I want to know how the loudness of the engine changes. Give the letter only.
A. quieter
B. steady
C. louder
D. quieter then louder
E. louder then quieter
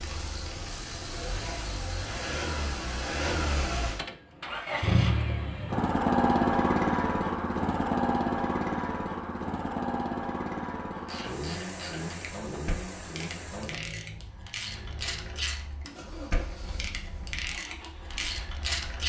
E.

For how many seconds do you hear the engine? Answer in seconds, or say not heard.
19 s.